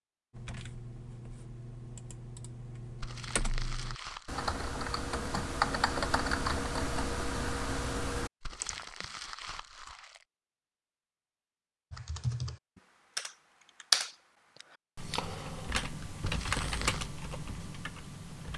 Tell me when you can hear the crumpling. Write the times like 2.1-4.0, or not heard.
3.0-4.5, 8.4-10.2, 16.2-17.1.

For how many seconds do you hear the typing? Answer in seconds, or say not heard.
15 s.